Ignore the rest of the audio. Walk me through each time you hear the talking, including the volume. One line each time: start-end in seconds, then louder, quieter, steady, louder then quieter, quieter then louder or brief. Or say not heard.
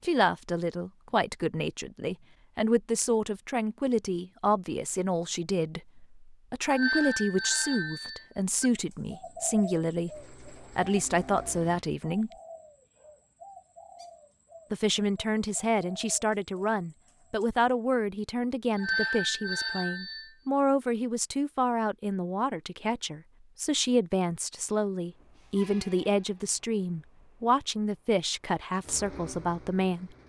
0.0-12.3 steady
14.7-30.1 steady.